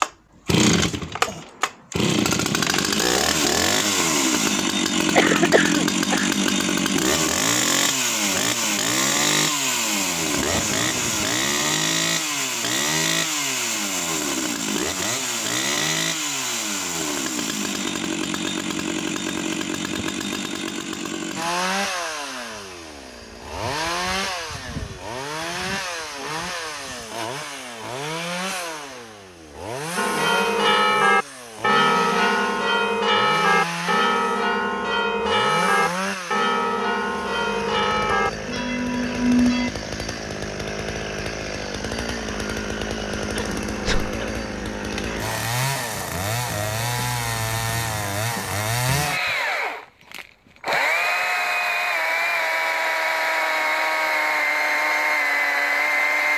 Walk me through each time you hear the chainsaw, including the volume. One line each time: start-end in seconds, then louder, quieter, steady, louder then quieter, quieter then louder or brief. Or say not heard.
0.0-56.3 quieter then louder.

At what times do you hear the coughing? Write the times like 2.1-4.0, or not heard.
5.1-6.5, 43.1-44.3.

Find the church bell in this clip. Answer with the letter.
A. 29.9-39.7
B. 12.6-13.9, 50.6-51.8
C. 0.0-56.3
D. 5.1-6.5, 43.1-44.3
A.